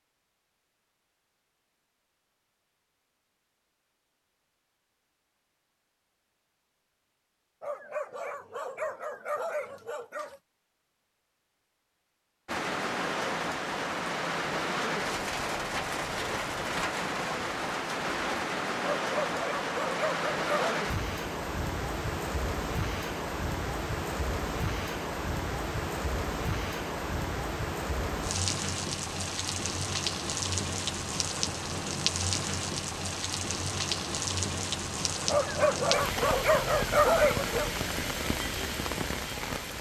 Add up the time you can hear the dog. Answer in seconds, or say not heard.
7 s.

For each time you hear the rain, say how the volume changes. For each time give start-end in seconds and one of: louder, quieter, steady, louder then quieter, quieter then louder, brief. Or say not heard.
12.4-39.7 steady.